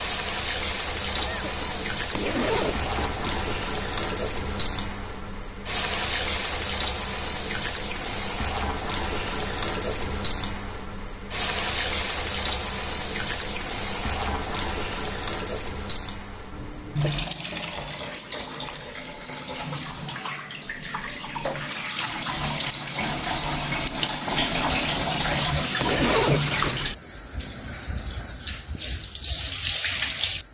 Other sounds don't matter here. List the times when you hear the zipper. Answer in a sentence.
You can hear the zipper from 2.1 to 3.5 s and from 25.8 to 26.9 s.